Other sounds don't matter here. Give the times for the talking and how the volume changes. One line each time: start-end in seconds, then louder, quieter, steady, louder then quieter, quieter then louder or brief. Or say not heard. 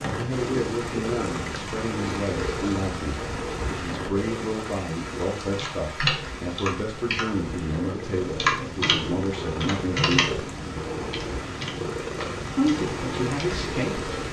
0.1-10.4 steady
12.6-14.1 brief.